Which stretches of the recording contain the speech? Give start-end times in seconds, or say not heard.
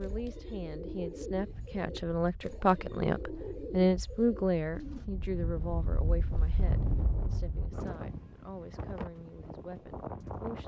0.0-10.6.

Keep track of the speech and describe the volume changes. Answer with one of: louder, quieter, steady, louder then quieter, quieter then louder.
louder then quieter.